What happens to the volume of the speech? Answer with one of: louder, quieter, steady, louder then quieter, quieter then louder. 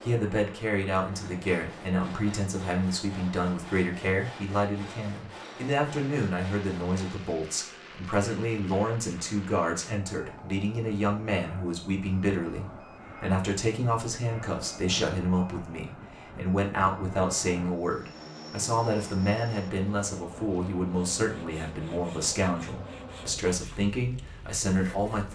steady.